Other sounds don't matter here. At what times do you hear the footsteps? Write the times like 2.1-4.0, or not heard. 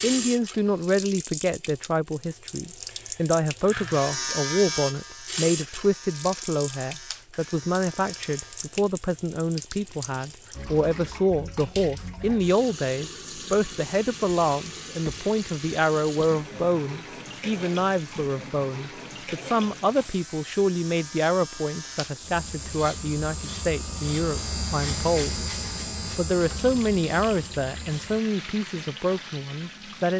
not heard.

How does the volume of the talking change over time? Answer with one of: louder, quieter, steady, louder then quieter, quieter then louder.
steady.